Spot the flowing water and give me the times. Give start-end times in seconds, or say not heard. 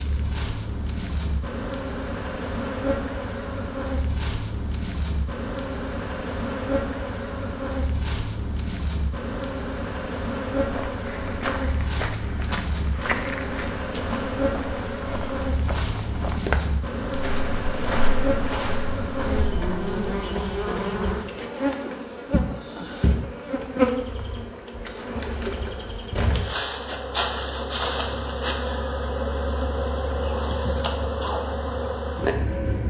not heard.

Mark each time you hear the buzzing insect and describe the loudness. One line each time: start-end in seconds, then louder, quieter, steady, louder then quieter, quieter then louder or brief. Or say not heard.
0.0-32.8 steady.